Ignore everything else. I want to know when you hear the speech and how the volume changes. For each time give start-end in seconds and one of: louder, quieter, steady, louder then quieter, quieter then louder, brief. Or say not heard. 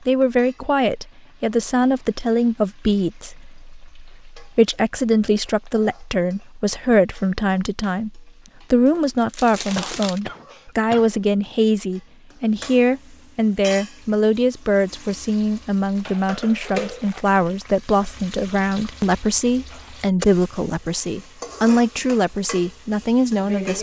0.1-23.7 steady.